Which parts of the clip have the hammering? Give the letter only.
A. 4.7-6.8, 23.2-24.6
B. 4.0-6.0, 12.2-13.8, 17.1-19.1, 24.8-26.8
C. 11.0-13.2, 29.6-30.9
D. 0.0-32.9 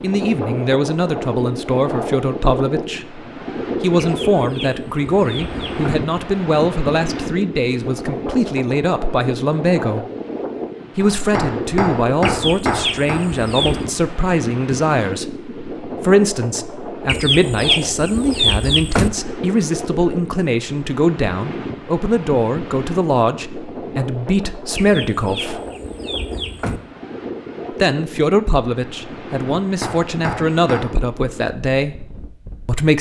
C.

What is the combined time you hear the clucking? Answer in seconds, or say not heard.
8 s.